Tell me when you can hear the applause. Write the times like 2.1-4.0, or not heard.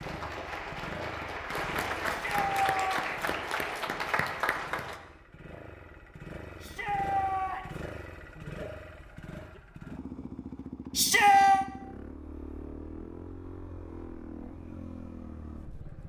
0.0-5.0.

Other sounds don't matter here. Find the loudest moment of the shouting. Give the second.
11 s.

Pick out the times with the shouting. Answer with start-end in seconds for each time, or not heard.
2.0-3.0, 6.5-7.8, 10.9-11.7.